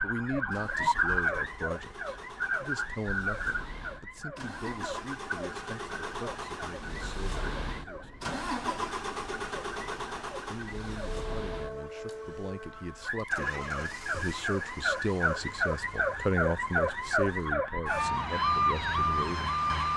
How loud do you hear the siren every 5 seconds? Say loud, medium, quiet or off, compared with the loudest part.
loud, quiet, medium, loud.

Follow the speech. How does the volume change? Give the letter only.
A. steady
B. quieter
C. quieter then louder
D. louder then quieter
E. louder
C.